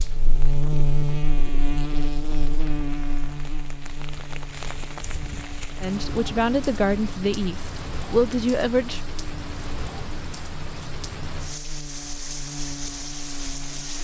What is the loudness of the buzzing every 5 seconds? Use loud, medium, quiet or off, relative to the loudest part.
loud, medium, medium.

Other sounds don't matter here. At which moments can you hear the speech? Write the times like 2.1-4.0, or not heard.
5.8-9.0.